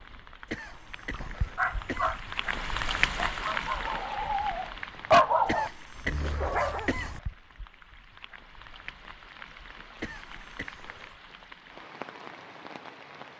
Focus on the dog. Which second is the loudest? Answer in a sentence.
The loudest moment of the dog is at 5 seconds.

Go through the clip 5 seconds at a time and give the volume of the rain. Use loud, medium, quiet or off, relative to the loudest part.
loud, quiet, medium.